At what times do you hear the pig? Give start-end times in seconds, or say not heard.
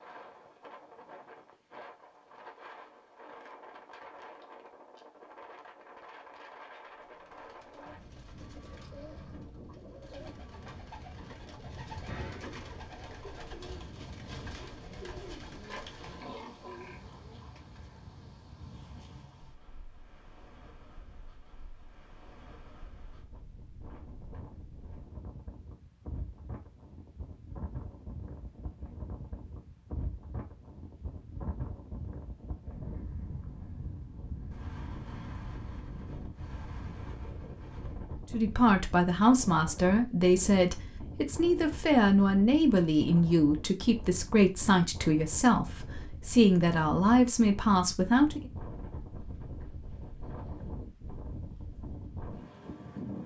15.6-17.5.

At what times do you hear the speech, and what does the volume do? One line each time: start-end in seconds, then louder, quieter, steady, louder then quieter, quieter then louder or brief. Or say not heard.
38.3-48.4 steady.